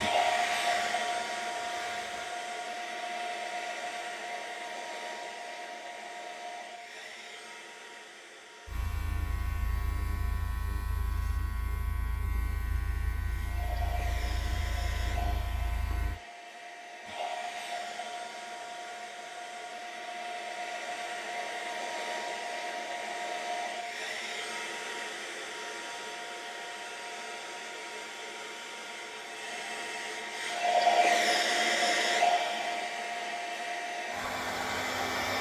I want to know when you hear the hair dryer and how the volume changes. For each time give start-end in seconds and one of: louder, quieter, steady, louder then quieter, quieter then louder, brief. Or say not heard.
0.0-35.3 quieter then louder.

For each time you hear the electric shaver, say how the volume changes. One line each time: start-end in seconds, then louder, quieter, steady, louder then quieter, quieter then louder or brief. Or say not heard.
0.1-2.4 brief
8.7-16.2 steady.